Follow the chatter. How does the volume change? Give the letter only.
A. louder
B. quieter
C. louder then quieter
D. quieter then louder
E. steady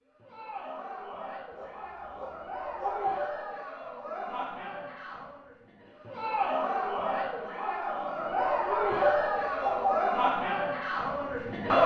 A.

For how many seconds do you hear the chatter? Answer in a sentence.
You can hear the chatter for 12 seconds altogether.